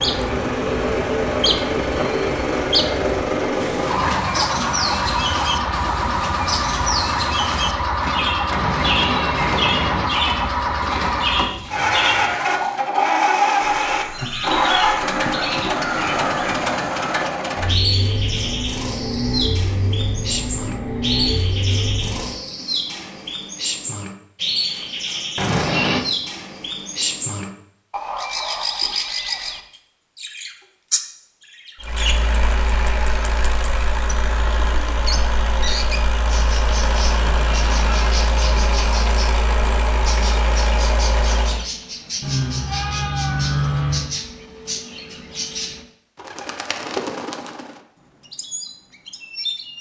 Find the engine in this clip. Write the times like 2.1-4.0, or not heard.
0.0-22.4, 31.8-41.6.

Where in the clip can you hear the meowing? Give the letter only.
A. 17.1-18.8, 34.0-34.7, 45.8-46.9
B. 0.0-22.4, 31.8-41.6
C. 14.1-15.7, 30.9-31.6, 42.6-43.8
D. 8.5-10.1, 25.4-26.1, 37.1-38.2
D.